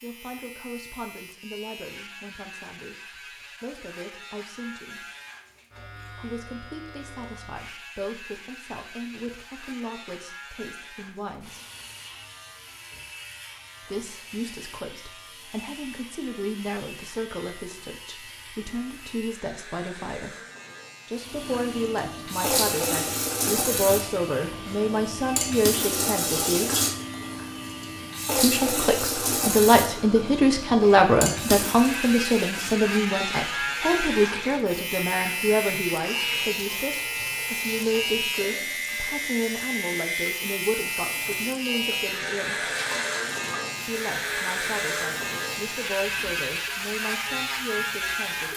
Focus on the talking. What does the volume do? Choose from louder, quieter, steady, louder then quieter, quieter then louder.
louder then quieter.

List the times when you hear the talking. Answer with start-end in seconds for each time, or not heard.
0.0-5.0, 6.2-11.6, 13.8-20.4, 21.1-26.7, 28.4-42.6, 43.9-48.5.